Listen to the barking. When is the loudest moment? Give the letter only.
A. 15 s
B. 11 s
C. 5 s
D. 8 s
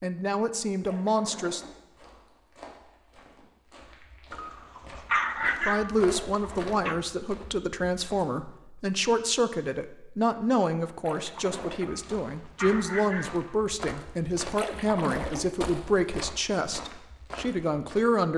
C.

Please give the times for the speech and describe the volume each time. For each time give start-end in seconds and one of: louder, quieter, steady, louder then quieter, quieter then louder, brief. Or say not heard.
0.0-1.6 brief
5.6-18.3 steady.